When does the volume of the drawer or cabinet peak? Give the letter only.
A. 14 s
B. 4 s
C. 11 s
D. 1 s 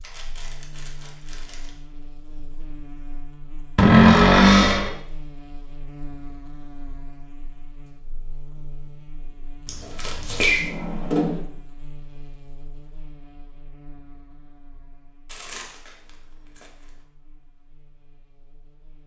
B.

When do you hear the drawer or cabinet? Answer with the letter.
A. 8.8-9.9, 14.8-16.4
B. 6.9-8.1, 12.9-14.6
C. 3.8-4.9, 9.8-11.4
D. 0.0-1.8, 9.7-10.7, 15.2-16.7
C.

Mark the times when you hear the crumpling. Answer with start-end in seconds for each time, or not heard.
0.0-1.8, 9.7-10.7, 15.2-16.7.